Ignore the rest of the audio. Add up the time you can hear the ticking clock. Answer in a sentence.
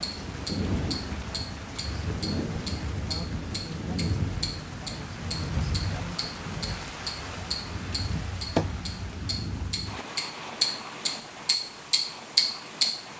The ticking clock can be heard for 13 seconds in total.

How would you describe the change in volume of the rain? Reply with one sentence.
The loudness of the rain goes down.